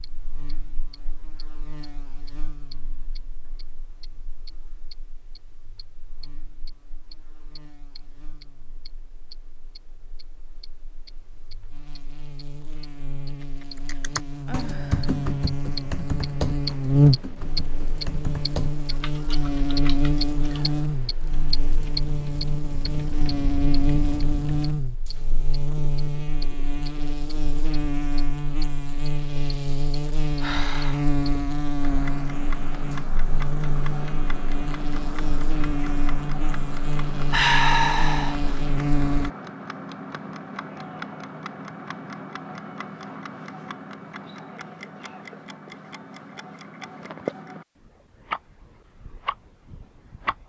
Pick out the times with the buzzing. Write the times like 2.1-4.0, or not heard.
0.0-39.3.